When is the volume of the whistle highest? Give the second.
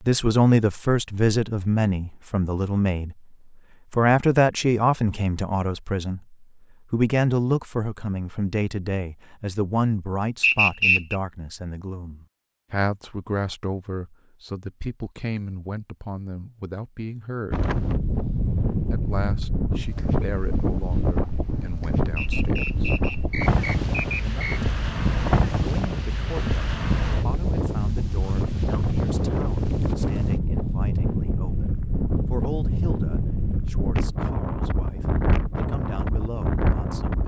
11 s.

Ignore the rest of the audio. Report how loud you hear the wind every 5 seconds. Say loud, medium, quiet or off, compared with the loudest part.
off, off, off, loud, loud, loud, loud, loud.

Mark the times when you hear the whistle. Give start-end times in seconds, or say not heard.
10.4-11.2, 22.1-24.6.